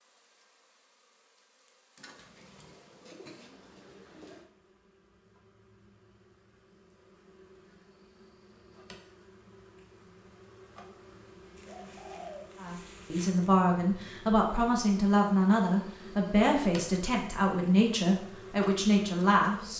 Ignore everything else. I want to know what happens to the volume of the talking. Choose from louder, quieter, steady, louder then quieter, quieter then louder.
steady.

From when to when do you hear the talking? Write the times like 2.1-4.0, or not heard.
12.6-19.7.